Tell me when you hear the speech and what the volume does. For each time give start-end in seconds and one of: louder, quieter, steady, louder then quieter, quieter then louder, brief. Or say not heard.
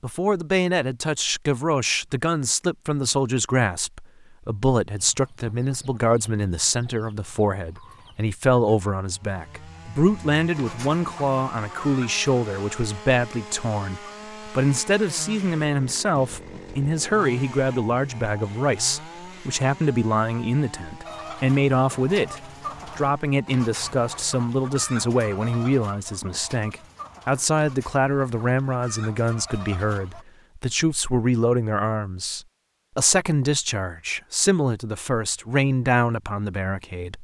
0.0-37.1 steady.